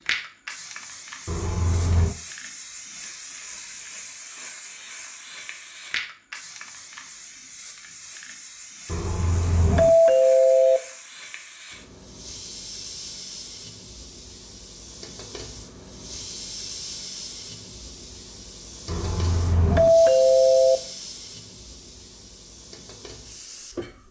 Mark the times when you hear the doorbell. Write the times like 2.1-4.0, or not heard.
1.2-2.1, 8.8-10.8, 18.9-20.8.